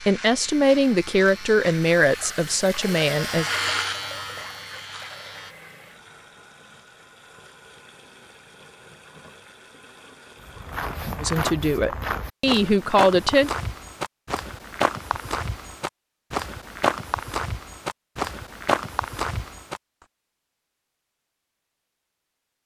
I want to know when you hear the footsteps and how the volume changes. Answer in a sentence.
You can hear the footsteps from 10.4 to 19.8 s, at a steady volume.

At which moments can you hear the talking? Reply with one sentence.
You can hear the talking from 0.0 to 3.5 s and from 11.2 to 13.5 s.